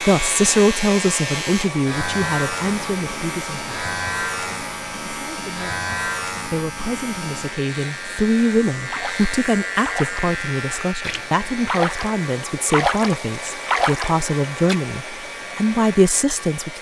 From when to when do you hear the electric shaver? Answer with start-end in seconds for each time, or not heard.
0.0-16.7.